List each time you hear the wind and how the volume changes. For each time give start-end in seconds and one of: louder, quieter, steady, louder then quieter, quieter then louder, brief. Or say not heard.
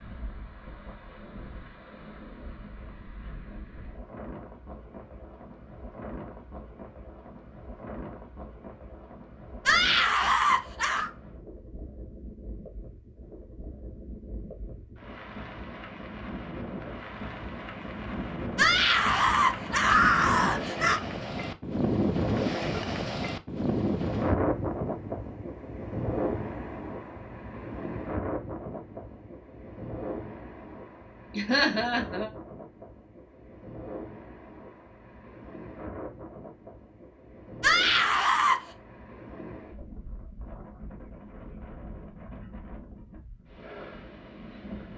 0.0-44.9 louder then quieter.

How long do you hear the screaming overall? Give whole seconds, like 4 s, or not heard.
5 s.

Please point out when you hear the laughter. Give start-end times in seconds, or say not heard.
31.3-32.3.